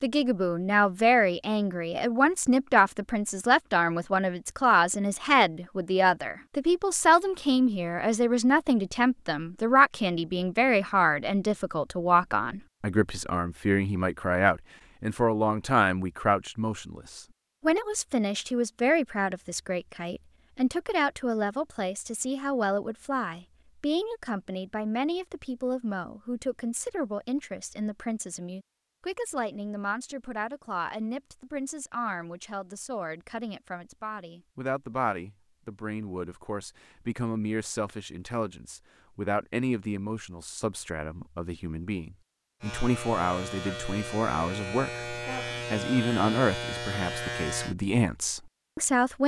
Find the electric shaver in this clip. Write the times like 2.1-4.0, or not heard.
42.6-47.8.